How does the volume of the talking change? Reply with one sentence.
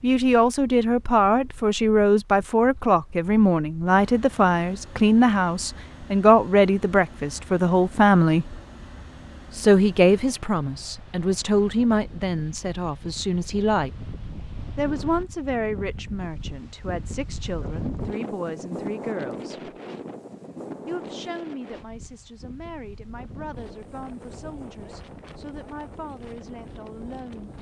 The loudness of the talking goes down.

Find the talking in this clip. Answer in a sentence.
You can hear the talking from 0.0 to 8.6 s, from 9.5 to 13.9 s, from 14.8 to 19.7 s and from 20.9 to 27.5 s.